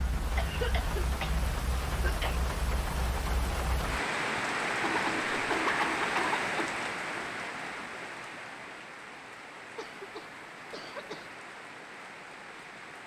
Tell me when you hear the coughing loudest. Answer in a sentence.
The volume of the coughing peaks at 6 seconds.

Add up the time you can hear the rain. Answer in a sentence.
The rain can be heard for 13 seconds in total.